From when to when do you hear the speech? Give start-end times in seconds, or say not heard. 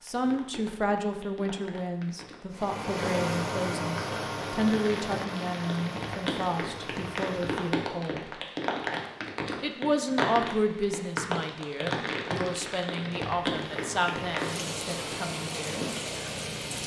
0.0-8.4, 9.6-15.9.